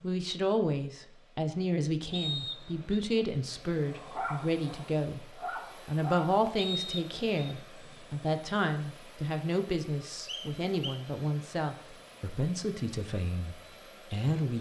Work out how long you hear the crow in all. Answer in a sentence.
The crow can't be heard in this clip.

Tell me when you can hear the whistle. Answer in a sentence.
You can hear the whistle from 2.1 to 3.0 s, from 6.5 to 7.5 s and from 10.2 to 11.0 s.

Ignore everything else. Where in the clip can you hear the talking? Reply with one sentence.
You can hear the talking from 0.0 to 14.5 s.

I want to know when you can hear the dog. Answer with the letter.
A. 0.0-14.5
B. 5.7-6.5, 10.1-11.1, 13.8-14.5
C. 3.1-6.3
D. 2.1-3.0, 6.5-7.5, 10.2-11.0
C.